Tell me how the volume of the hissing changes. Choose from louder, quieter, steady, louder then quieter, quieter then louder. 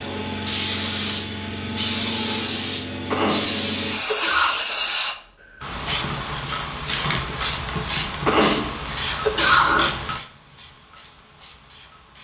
quieter.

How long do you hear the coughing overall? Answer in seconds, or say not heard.
3 s.